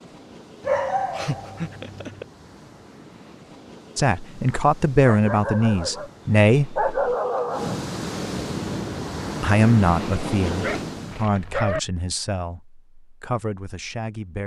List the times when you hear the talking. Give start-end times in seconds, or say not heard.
4.0-6.8, 9.4-14.4.